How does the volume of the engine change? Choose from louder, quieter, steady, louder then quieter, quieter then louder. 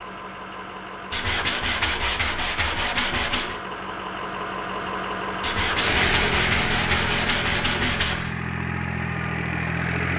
louder.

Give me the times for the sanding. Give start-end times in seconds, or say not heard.
1.1-3.6, 5.4-8.2.